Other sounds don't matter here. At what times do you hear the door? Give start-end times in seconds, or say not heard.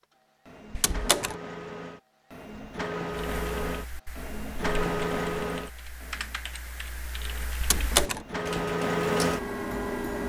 0.7-1.4, 7.6-8.2.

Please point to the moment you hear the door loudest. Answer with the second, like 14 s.
8 s.